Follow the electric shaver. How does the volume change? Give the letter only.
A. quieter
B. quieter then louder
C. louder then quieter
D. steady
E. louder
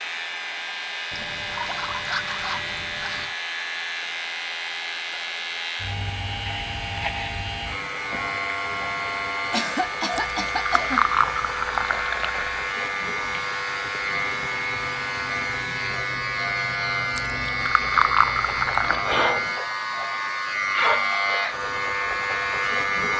E.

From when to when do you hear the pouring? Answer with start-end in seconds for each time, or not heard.
1.1-3.4, 10.2-12.7, 17.1-19.1.